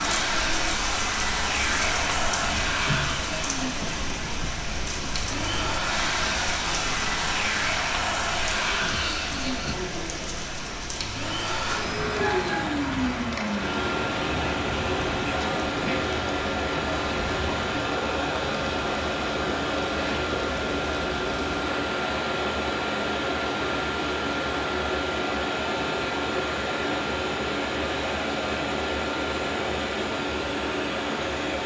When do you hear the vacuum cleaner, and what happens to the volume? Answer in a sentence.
The vacuum cleaner can be heard from 0.0 to 31.6 s, at a steady volume.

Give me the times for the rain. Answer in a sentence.
You can hear the rain from 0.0 to 31.6 s.